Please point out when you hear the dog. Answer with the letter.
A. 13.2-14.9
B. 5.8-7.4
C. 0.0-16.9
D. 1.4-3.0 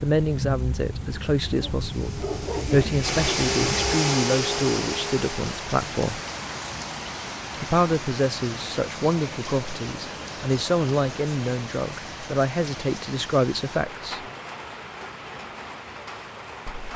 D.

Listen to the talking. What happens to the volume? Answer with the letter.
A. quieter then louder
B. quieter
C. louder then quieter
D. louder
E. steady
E.